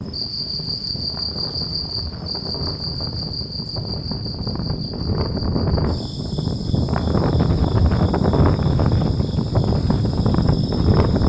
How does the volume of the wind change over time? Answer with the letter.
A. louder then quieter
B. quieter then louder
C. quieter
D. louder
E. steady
D.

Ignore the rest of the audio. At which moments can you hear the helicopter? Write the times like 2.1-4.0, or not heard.
not heard.